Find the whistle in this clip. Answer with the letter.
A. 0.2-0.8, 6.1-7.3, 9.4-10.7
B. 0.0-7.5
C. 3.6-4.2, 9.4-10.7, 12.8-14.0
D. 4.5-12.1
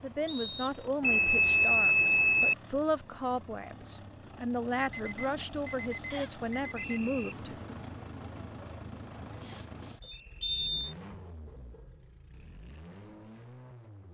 A.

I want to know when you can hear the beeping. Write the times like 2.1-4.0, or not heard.
1.0-2.5, 4.8-7.0, 10.0-10.9.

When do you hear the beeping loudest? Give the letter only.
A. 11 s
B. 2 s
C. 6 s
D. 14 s
B.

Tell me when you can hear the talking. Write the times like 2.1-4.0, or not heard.
0.0-7.5.